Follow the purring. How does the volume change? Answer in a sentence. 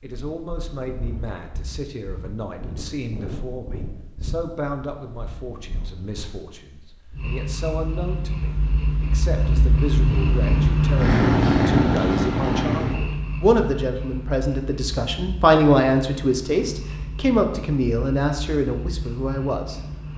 The loudness of the purring goes up, then down.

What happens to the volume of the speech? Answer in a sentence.
The loudness of the speech goes up.